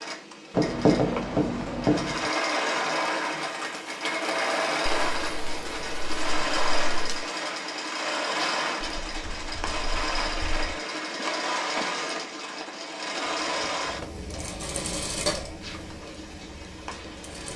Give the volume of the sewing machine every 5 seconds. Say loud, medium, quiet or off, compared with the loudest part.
loud, loud, loud, medium.